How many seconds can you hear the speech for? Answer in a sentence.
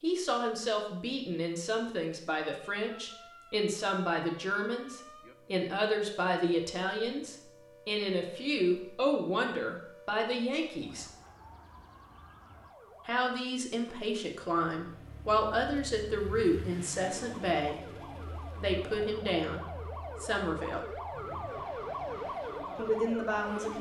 You can hear the speech for 19 seconds altogether.